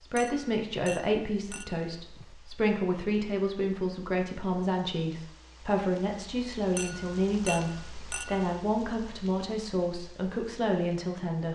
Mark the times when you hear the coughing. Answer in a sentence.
The coughing can't be heard in this clip.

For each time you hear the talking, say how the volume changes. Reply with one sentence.
You can hear the talking from 0.0 to 11.5 s, at a steady volume.